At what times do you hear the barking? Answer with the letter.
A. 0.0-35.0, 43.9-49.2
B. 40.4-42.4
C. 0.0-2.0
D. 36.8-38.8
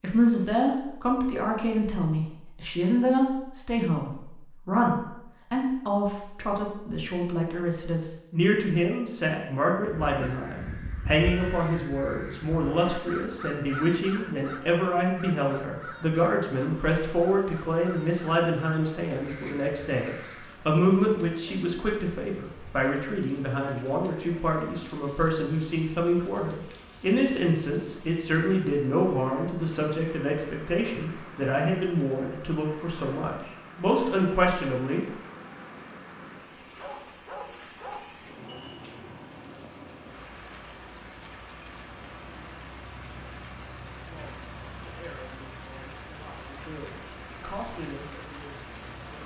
D.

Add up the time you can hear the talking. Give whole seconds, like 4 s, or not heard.
40 s.